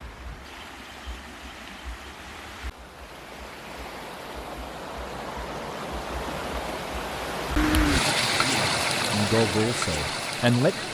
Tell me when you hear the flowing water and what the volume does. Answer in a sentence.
The flowing water can be heard from 0.0 to 10.8 s, getting louder.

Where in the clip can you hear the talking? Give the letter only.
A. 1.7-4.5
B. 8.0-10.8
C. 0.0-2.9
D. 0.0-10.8
B.